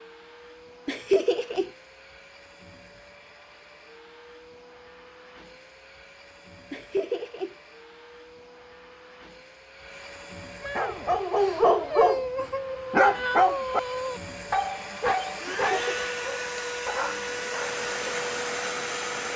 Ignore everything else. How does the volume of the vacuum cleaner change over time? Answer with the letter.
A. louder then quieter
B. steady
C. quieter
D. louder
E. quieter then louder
D.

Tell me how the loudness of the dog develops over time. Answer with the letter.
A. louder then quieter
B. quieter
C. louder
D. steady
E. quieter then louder
B.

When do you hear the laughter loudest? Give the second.
1 s.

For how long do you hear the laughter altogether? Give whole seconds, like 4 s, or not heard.
2 s.